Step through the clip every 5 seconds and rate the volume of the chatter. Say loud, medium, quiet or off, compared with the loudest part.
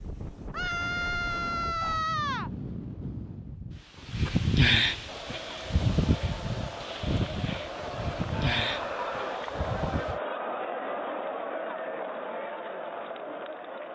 off, loud, loud.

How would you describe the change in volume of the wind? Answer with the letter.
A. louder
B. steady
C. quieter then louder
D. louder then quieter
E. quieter
D.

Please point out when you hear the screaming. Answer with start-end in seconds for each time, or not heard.
0.5-2.5, 8.3-9.4.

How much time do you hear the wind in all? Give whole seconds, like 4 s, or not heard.
10 s.